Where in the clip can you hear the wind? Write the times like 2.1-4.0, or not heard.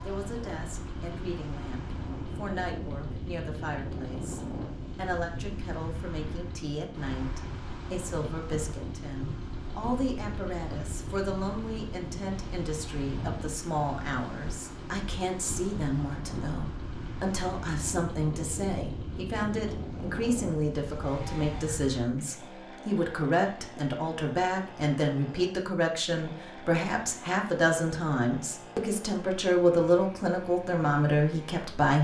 0.0-22.0.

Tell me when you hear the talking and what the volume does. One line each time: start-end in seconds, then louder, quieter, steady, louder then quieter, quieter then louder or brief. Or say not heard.
0.0-31.9 louder.